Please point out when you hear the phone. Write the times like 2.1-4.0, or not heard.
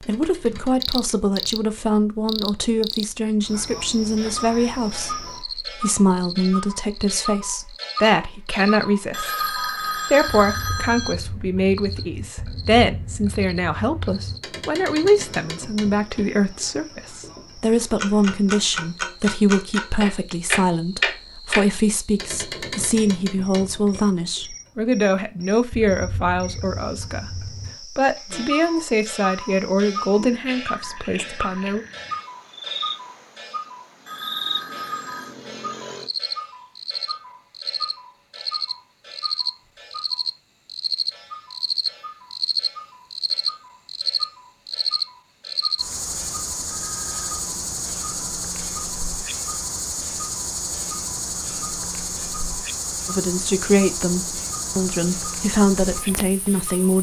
9.1-11.2, 34.0-35.4, 46.6-47.4.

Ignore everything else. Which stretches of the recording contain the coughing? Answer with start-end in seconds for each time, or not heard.
not heard.